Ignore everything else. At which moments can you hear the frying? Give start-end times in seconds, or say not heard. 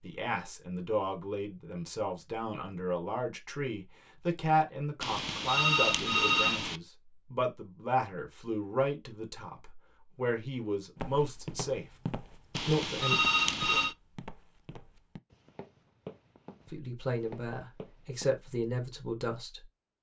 not heard.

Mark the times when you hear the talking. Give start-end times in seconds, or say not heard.
0.0-11.9, 12.7-13.2, 16.7-19.6.